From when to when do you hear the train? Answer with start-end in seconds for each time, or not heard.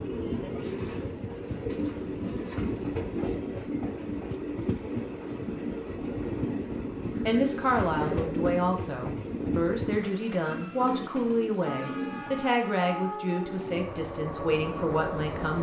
0.0-15.5.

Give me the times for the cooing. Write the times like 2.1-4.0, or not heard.
0.6-3.5, 7.2-8.6, 10.4-12.4.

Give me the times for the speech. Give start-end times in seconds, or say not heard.
7.2-15.5.